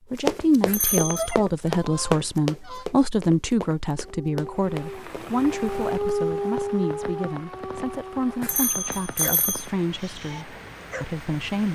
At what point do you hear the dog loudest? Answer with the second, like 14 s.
6 s.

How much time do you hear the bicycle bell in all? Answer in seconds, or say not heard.
2 s.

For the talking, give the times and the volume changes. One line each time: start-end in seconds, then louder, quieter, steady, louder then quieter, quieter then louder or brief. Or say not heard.
0.1-11.7 quieter.